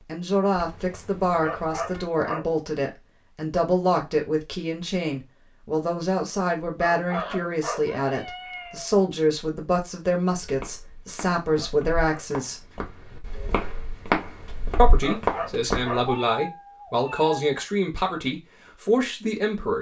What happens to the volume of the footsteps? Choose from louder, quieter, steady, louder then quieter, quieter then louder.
louder.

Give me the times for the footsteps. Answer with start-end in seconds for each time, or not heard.
10.4-15.9.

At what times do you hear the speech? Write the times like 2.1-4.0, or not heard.
0.0-12.7, 14.8-19.7.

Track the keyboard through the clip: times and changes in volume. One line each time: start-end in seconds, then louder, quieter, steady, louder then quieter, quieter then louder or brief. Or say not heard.
not heard.